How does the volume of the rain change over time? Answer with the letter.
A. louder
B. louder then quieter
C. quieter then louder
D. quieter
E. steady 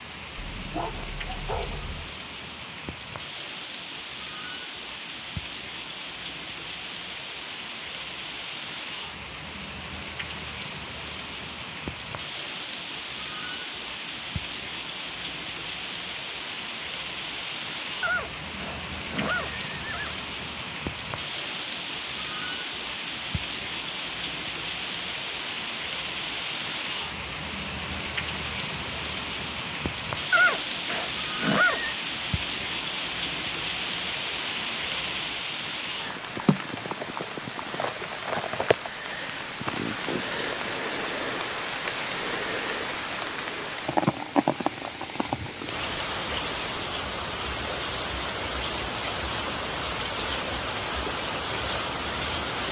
A.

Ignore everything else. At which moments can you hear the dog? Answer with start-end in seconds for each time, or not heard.
0.3-2.1.